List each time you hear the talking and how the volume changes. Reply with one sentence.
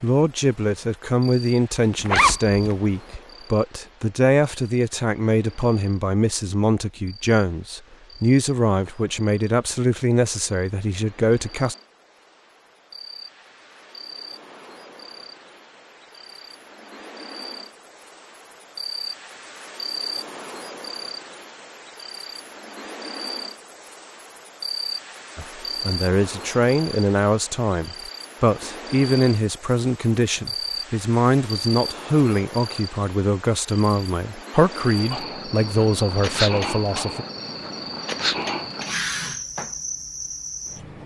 You can hear the talking from 0.0 to 11.8 s, at a steady volume; and from 25.4 to 37.2 s, at a steady volume.